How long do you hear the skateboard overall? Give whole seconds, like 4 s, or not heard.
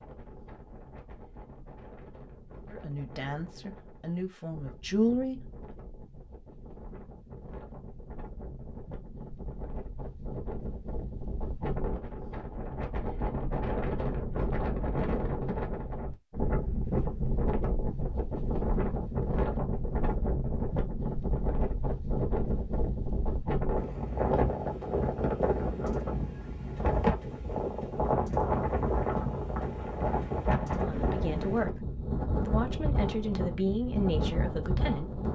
not heard.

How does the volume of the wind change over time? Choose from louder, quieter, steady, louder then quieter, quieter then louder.
louder.